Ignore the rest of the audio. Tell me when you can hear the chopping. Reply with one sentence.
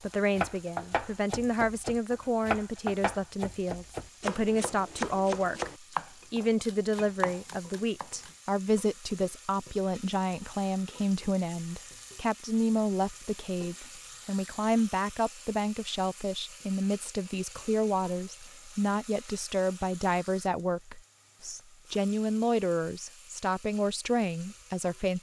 You can hear the chopping from 0.3 to 8.3 s.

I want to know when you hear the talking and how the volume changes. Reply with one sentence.
The talking can be heard from 0.0 to 25.1 s, at a steady volume.